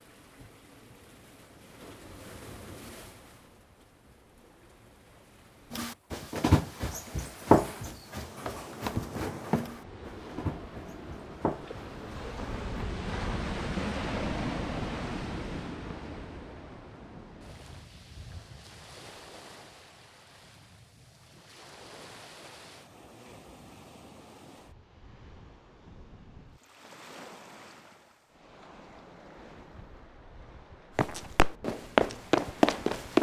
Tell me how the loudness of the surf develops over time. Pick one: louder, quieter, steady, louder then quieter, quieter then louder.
louder then quieter.